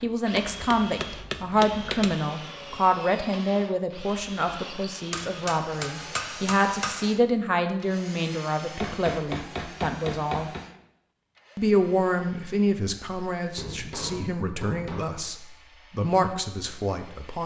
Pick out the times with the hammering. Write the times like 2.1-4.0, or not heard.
0.3-2.2, 5.1-7.0, 8.8-10.7, 13.3-15.1.